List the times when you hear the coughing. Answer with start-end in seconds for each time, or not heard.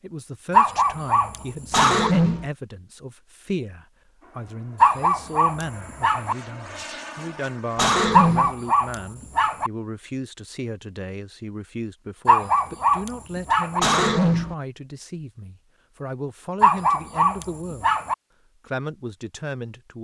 1.7-2.5, 7.8-8.6, 13.8-14.6.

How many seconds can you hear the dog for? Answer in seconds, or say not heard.
8 s.